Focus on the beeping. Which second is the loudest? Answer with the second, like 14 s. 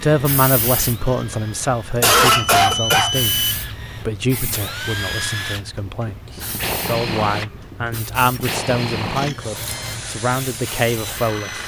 3 s.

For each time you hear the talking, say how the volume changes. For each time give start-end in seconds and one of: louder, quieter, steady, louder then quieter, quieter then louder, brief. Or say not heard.
0.0-11.6 quieter then louder.